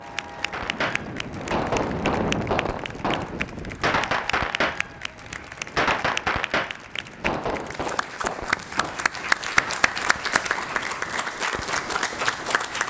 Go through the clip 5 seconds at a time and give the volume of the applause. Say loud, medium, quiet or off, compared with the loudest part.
medium, loud, loud.